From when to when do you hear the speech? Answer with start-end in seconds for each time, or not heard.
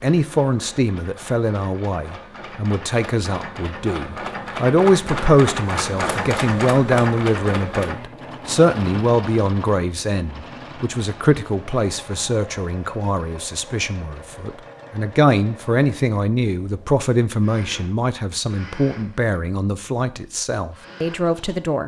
0.0-21.8.